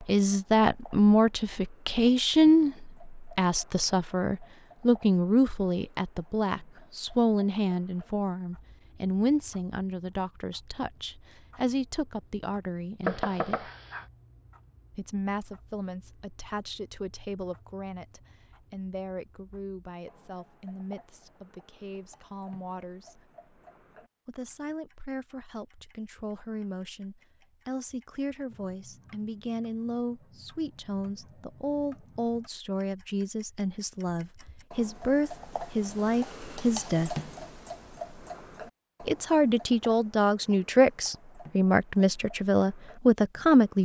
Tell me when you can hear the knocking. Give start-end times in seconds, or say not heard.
13.1-14.1.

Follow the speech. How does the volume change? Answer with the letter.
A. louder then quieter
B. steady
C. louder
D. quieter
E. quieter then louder
E.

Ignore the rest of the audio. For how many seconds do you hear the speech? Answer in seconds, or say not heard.
40 s.